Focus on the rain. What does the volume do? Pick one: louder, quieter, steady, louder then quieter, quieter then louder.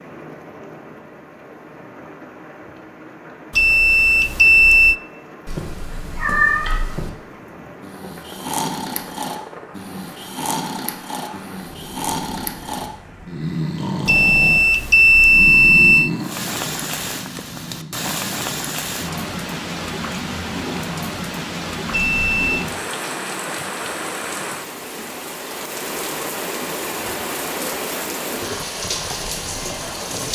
louder.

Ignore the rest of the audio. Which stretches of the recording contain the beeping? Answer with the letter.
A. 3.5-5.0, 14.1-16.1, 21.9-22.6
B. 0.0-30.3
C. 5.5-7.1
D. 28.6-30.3
A.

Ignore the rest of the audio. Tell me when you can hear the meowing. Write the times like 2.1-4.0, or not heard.
5.5-7.1.